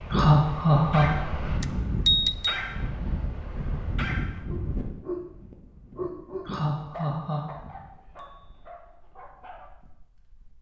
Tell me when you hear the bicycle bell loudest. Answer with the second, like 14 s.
2 s.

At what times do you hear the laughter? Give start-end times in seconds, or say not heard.
0.1-1.6, 6.5-7.8.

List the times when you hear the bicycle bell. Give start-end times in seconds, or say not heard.
1.6-2.6, 8.2-8.7.